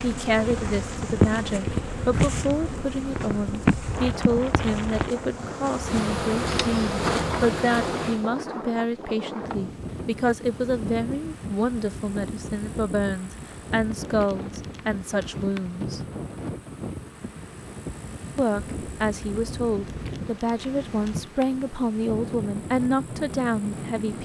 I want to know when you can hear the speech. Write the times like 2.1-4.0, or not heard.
0.0-16.0, 18.4-24.2.